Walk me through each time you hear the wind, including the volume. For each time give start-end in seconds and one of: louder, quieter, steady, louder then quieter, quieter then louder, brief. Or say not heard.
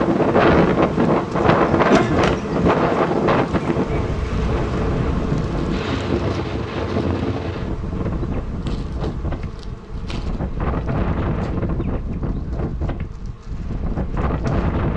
0.0-14.9 quieter.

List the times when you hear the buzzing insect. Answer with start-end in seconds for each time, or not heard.
0.0-14.8.